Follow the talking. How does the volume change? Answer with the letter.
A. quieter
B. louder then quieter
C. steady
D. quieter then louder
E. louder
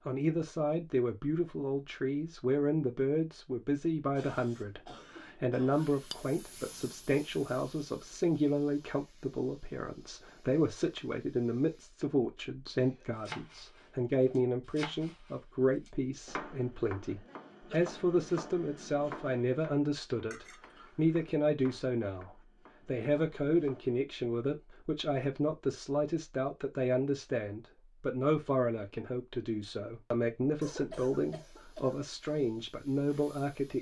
C.